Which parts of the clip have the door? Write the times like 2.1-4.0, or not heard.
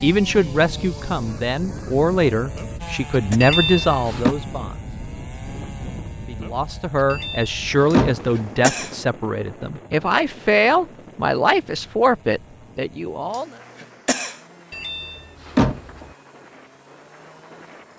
3.4-4.3, 7.1-8.2, 14.7-16.1.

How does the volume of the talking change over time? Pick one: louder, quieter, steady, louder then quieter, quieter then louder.
steady.